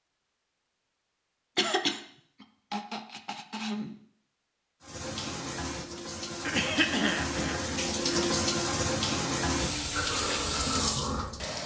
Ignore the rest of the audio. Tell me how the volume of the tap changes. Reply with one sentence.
The loudness of the tap goes up.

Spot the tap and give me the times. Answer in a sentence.
You can hear the tap from 4.8 to 11.6 s.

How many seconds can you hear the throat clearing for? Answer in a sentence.
You can hear the throat clearing for 4 seconds altogether.